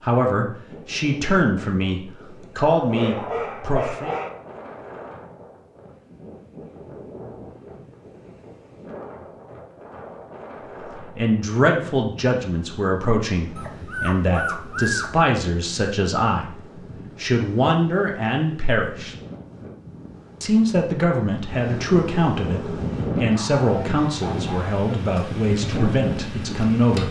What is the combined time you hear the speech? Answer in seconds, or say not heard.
19 s.